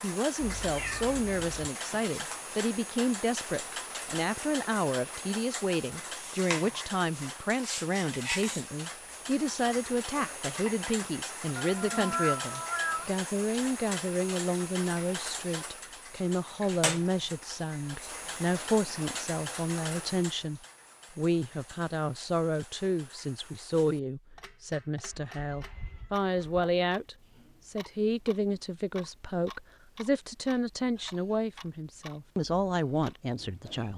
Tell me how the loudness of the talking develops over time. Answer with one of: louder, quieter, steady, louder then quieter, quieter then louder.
steady.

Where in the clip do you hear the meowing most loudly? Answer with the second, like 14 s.
12 s.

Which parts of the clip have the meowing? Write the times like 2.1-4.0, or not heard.
0.4-1.7, 11.6-13.1, 25.1-26.6.